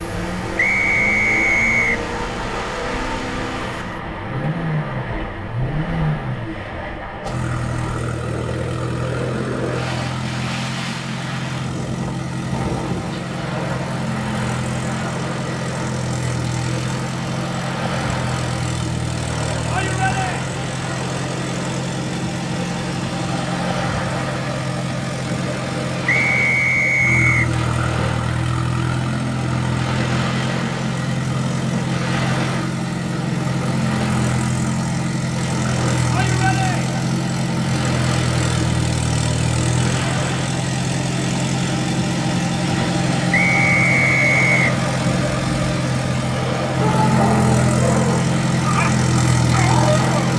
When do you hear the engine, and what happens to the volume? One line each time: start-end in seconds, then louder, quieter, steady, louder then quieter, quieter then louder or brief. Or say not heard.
0.0-50.3 louder.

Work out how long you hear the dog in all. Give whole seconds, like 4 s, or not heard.
4 s.